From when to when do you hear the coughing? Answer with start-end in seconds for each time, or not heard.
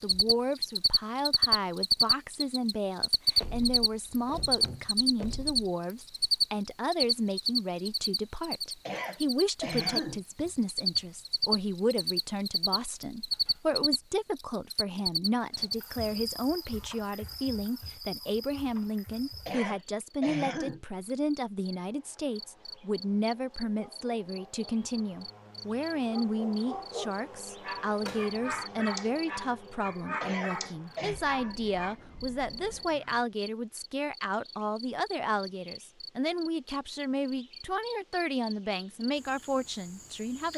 8.8-10.2, 19.4-20.8, 30.2-31.2.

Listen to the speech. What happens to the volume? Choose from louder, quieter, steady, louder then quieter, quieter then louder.
steady.